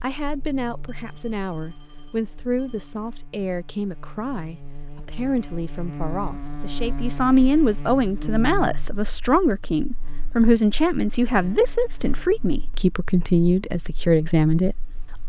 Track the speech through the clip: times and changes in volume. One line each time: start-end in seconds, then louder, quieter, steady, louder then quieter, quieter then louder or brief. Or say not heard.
0.0-15.2 louder.